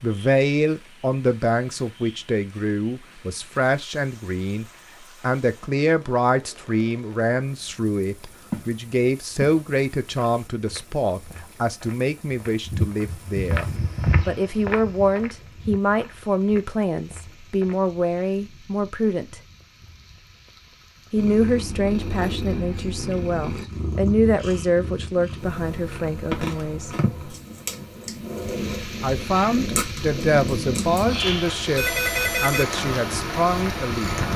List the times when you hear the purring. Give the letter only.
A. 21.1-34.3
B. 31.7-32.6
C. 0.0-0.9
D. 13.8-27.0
A.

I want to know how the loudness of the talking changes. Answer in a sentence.
The loudness of the talking stays about the same.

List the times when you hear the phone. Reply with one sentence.
The phone can be heard from 31.7 to 32.6 s.